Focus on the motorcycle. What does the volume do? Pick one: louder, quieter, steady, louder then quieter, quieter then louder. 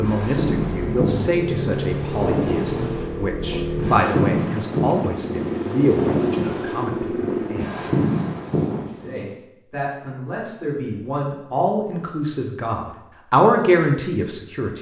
steady.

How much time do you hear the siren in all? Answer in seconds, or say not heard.
not heard.